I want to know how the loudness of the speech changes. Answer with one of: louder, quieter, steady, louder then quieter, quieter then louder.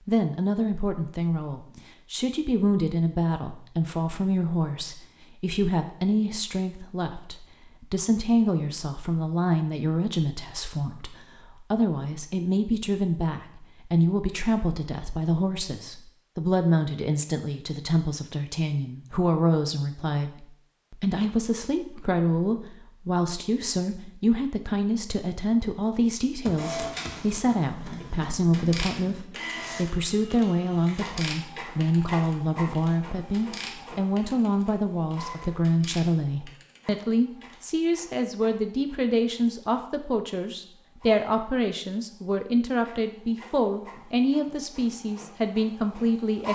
steady.